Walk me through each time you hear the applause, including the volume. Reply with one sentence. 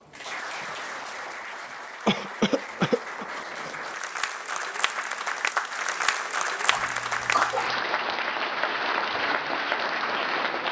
The applause can be heard from 0.0 to 10.6 s, getting louder.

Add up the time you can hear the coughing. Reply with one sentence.
You can hear the coughing for 2 seconds altogether.